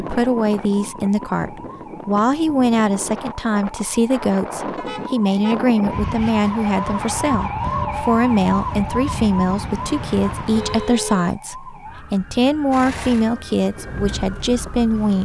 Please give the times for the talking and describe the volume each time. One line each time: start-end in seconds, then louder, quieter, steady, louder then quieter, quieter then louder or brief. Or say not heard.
0.0-15.2 steady.